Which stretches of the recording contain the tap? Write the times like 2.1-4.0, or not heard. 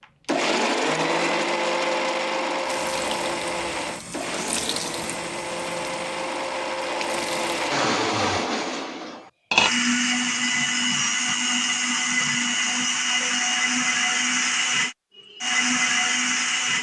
2.6-7.8.